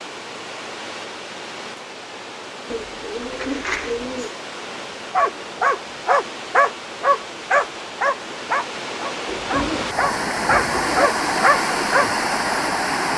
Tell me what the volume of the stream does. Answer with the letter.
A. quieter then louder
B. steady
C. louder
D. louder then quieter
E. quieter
C.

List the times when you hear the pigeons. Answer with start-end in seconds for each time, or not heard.
2.7-4.3, 9.2-11.1.